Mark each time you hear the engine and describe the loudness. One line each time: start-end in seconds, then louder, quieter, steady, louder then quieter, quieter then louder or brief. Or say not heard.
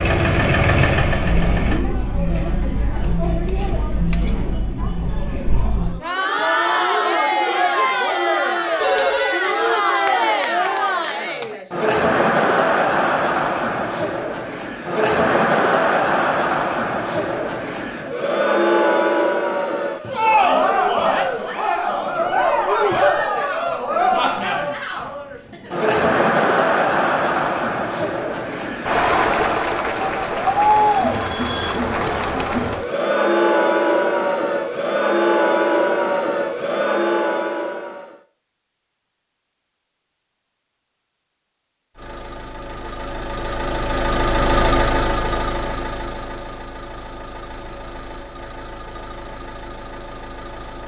0.0-1.9 brief
42.0-50.8 louder then quieter.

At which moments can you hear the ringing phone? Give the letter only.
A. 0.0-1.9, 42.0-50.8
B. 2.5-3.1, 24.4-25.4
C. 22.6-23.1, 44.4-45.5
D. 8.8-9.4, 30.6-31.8
D.